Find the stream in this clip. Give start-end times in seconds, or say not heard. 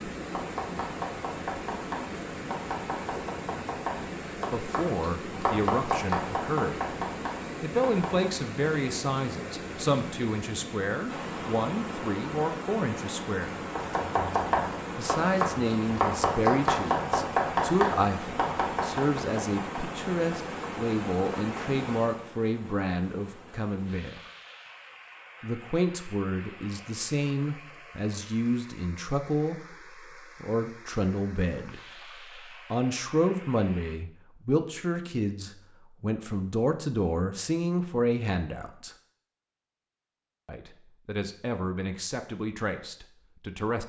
0.0-34.0.